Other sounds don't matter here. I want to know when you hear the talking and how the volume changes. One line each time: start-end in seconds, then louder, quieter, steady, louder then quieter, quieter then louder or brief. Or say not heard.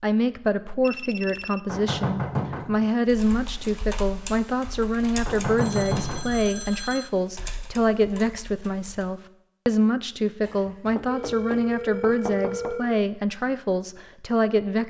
0.0-14.8 steady.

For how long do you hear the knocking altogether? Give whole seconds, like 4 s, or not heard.
5 s.